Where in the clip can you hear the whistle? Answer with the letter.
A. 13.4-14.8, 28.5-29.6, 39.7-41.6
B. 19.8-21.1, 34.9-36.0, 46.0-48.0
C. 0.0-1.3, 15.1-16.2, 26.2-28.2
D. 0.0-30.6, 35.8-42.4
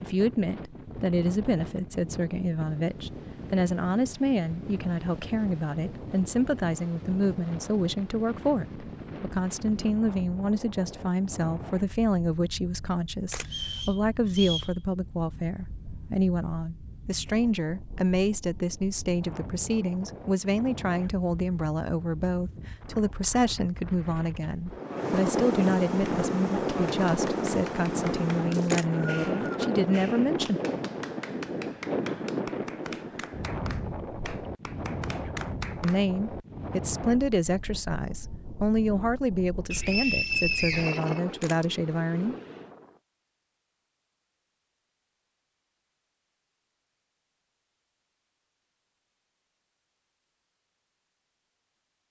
A.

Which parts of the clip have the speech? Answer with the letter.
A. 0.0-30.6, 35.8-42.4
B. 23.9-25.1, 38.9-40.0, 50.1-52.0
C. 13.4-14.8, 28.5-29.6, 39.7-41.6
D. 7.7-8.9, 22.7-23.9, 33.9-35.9
A.